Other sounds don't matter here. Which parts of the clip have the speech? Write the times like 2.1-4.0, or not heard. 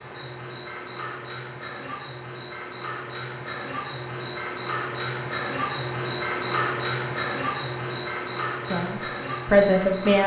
8.7-10.2.